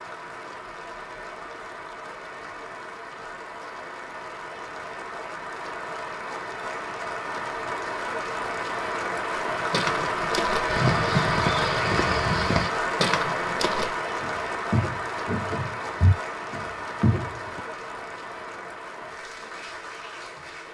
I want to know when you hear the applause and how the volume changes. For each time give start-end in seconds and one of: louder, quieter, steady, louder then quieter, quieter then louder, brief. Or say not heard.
0.0-20.6 louder then quieter.